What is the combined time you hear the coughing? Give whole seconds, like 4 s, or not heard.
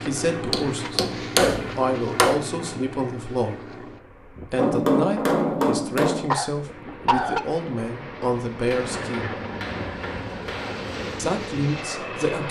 2 s.